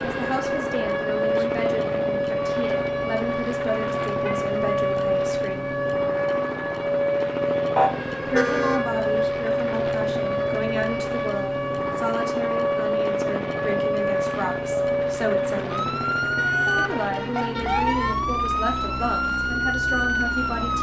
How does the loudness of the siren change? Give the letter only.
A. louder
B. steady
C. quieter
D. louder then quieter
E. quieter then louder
B.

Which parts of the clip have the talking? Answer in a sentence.
You can hear the talking from 0.0 to 5.8 s, from 8.2 to 15.9 s and from 16.8 to 20.7 s.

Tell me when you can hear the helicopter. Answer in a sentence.
The helicopter can be heard from 0.0 to 20.7 s.